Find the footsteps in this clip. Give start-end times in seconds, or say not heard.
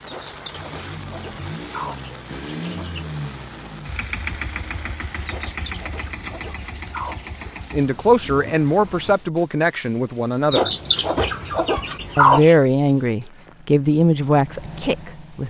not heard.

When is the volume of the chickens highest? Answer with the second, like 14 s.
12 s.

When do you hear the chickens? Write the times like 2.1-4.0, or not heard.
0.1-3.0, 5.2-7.3, 10.5-12.6.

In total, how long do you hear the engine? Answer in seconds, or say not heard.
11 s.